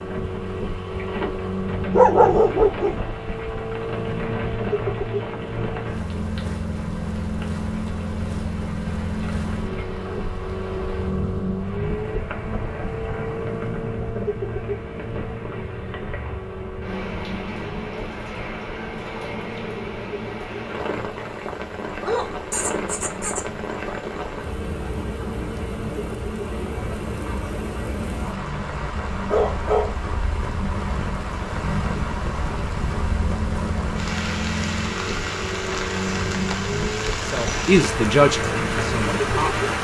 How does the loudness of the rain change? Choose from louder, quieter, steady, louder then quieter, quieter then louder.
louder.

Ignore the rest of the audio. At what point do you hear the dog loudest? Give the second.
2 s.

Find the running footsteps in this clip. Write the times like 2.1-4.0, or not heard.
not heard.